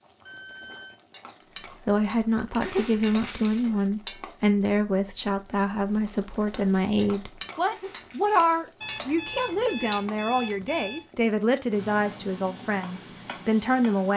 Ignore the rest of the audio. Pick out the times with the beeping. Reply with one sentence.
The beeping can be heard from 0.2 to 0.9 s and from 8.8 to 11.0 s.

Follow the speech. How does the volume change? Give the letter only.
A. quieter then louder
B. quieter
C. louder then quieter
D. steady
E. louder
D.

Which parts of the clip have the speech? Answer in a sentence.
The speech can be heard from 1.9 to 14.1 s.